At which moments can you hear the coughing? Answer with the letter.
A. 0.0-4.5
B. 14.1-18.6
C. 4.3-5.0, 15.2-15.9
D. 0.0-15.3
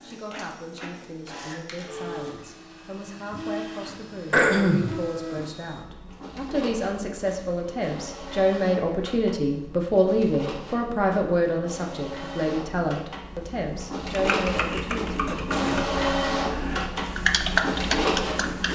C.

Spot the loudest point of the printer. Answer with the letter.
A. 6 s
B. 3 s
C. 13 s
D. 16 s
D.